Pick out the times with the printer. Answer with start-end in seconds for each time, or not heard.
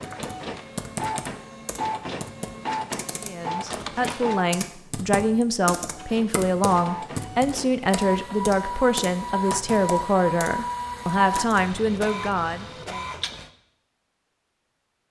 0.0-4.5, 5.9-13.5.